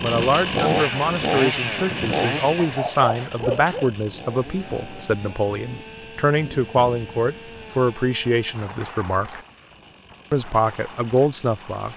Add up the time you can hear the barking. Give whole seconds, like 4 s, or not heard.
2 s.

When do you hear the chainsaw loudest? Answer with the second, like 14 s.
1 s.